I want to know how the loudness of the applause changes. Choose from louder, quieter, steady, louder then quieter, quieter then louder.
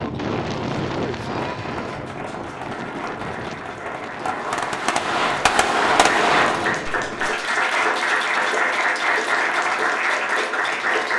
louder.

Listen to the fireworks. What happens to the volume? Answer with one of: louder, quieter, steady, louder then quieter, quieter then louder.
louder.